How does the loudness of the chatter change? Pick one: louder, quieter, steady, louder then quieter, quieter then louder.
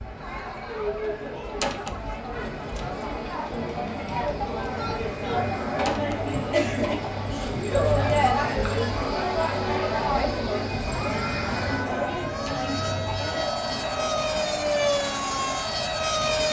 louder then quieter.